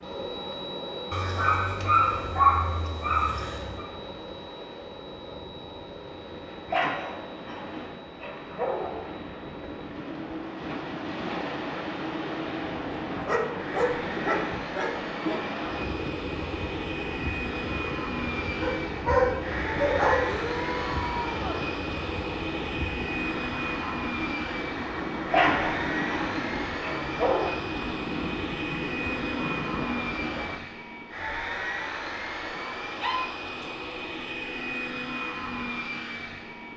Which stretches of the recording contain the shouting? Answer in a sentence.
The shouting can be heard from 20.2 to 21.6 s.